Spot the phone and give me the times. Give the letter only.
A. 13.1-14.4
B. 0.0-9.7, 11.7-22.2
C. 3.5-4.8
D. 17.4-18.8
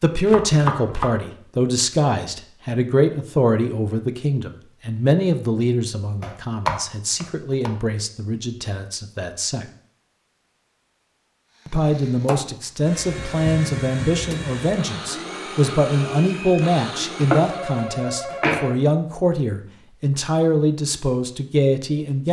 D.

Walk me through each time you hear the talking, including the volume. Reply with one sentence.
The talking can be heard from 0.0 to 9.7 s, getting quieter; and from 11.7 to 22.2 s, at a steady volume.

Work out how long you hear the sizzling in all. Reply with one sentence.
The sizzling can't be heard in this clip.